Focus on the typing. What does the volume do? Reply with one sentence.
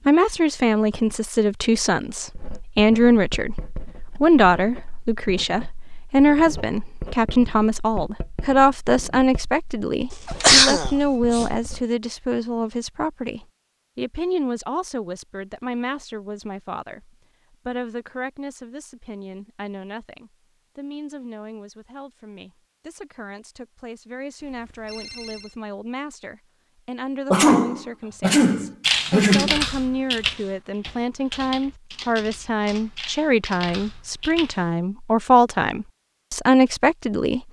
The loudness of the typing goes down.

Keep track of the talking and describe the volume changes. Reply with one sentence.
The volume of the talking goes down, then up.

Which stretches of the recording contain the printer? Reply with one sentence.
You can't hear the printer here.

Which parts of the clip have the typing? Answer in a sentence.
You can hear the typing from 28.8 to 34.6 s.